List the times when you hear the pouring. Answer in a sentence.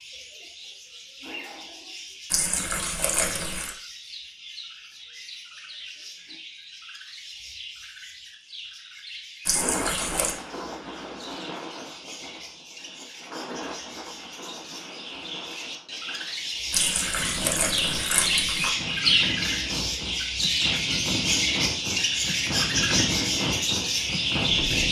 The pouring can be heard from 2.3 to 3.8 s, from 9.4 to 10.3 s and from 16.7 to 18.7 s.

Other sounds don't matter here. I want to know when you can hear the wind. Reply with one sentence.
The wind can be heard from 9.6 to 24.8 s.